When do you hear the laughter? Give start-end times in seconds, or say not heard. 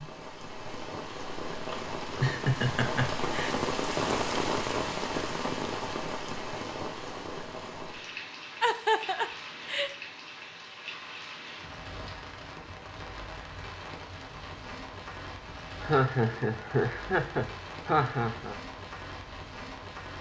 1.7-3.5, 8.6-9.9, 15.8-18.6.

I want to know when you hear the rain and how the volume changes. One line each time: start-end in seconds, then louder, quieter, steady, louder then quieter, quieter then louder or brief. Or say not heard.
0.0-20.1 quieter.